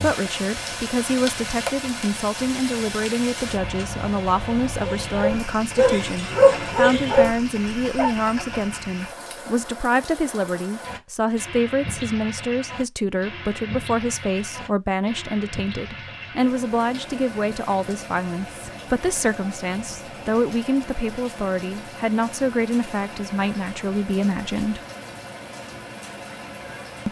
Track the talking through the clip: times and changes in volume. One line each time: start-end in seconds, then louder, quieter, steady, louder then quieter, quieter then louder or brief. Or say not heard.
0.0-24.8 steady.